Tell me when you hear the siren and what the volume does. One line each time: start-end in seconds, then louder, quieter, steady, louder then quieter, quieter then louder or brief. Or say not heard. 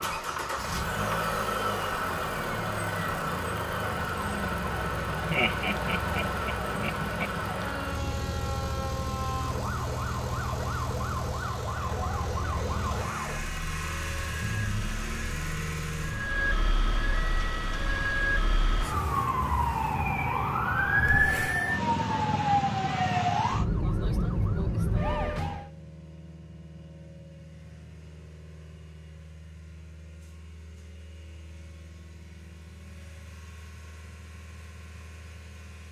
0.0-25.7 louder.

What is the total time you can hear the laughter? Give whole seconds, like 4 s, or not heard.
2 s.